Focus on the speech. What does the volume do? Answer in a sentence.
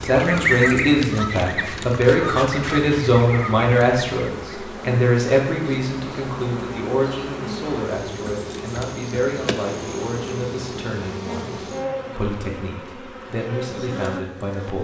The volume of the speech goes down.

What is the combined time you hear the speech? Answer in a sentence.
The speech can be heard for 15 seconds in total.